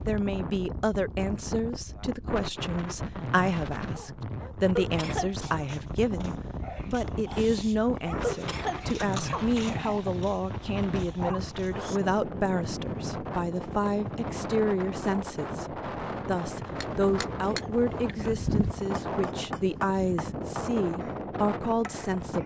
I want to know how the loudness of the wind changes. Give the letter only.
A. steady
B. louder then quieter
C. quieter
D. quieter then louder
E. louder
A.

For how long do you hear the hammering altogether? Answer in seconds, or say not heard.
6 s.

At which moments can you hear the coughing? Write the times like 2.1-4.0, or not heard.
4.8-5.3, 8.2-9.7, 17.4-17.8.